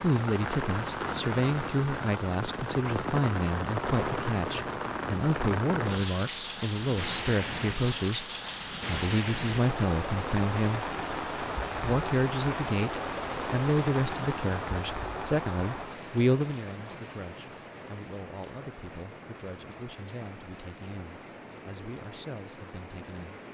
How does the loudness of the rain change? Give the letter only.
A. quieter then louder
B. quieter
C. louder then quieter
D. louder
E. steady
B.